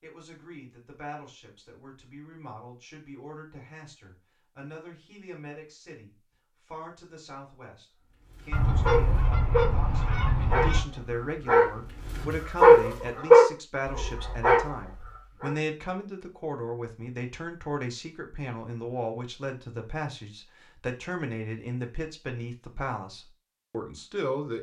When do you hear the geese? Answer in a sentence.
You can hear the geese from 8.5 to 10.8 s.